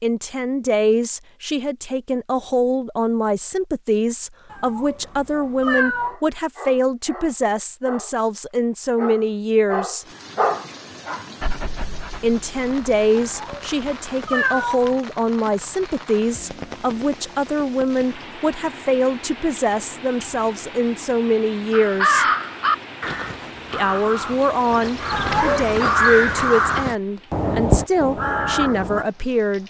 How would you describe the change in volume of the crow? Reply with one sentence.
The loudness of the crow goes down, then up.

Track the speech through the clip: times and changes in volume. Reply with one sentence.
The speech can be heard from 0.0 to 10.1 s, at a steady volume; from 12.2 to 22.2 s, at a steady volume; and from 23.7 to 29.6 s, at a steady volume.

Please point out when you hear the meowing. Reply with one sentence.
You can hear the meowing from 4.5 to 6.2 s, from 13.2 to 15.0 s and from 25.1 to 25.8 s.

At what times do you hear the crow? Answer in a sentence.
You can hear the crow from 21.7 to 29.1 s.